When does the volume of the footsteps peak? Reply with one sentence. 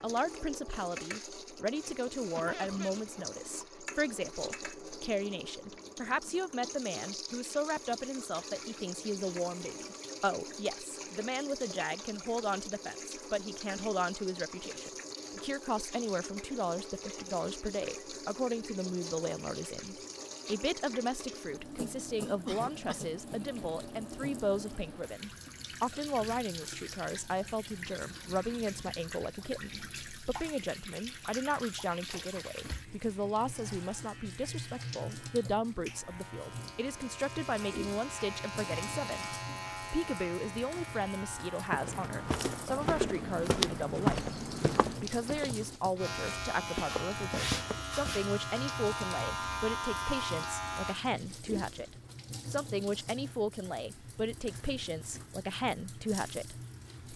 The loudest moment of the footsteps is at 44 seconds.